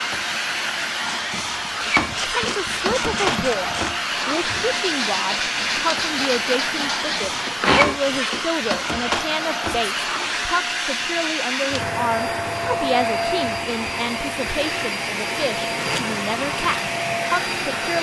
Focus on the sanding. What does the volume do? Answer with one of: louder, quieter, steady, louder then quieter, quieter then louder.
louder.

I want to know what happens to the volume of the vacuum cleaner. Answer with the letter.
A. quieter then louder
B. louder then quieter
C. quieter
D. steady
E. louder
D.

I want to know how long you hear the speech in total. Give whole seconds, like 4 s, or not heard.
16 s.